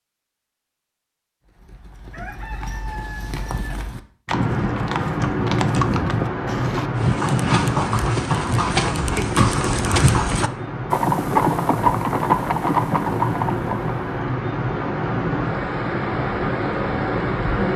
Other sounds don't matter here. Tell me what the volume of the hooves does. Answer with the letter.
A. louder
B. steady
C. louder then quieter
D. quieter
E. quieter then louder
A.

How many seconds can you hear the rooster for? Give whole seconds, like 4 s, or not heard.
2 s.